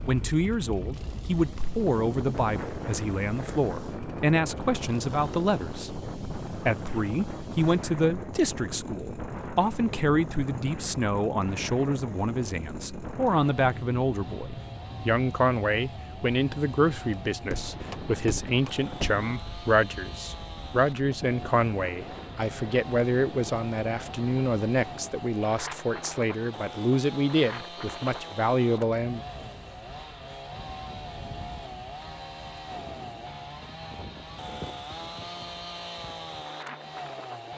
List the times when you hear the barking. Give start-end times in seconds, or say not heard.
not heard.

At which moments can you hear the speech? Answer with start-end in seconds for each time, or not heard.
0.0-29.2.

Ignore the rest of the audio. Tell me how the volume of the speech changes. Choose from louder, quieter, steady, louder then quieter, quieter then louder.
steady.